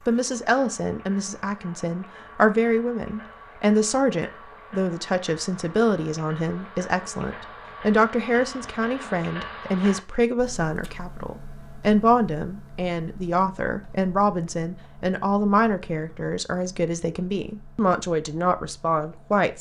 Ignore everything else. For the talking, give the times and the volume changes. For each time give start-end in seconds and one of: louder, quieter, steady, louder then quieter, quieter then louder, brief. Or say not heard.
0.1-19.5 steady.